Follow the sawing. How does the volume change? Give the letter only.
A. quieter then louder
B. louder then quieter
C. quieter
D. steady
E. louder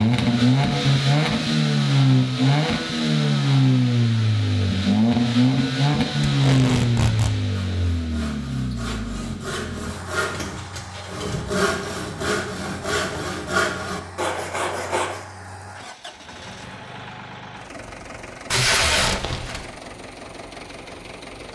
E.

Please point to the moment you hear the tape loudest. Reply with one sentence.
The loudest moment of the tape is at 19 seconds.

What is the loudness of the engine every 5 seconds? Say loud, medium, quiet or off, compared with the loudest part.
loud, loud, quiet, quiet, quiet.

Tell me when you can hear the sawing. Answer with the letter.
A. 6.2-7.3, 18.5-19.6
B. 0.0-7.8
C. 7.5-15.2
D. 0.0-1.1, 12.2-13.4
C.